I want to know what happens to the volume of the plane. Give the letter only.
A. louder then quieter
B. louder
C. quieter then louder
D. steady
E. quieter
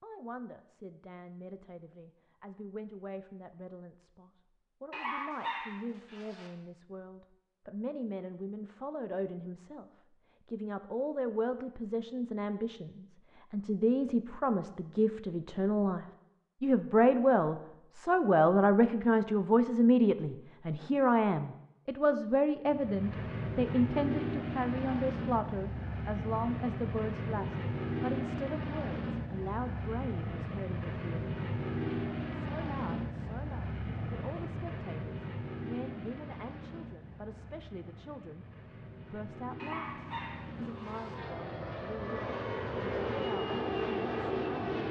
C.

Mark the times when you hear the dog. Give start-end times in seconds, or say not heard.
4.9-6.5, 39.5-41.1.